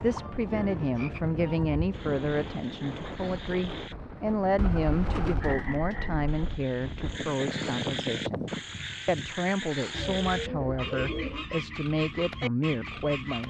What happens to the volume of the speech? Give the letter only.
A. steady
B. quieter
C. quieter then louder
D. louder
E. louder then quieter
A.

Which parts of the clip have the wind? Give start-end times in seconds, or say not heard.
0.0-9.5.